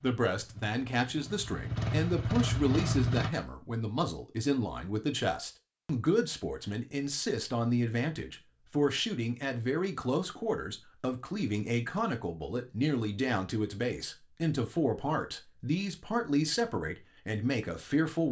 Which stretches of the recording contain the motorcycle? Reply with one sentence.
You can hear the motorcycle from 0.0 to 3.3 s.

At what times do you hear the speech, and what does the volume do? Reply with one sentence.
The speech can be heard from 0.0 to 18.2 s, at a steady volume.